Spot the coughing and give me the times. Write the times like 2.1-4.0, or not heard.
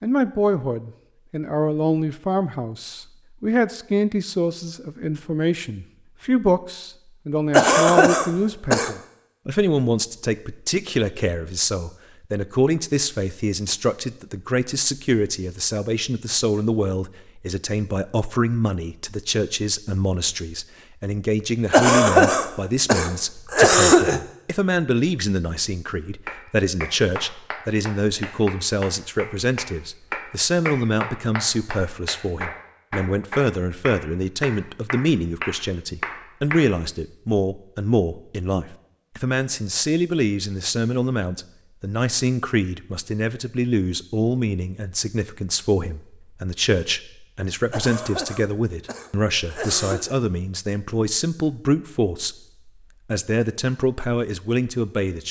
7.5-8.9, 21.7-24.2, 47.7-50.2.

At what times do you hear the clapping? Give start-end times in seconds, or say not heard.
26.2-36.7.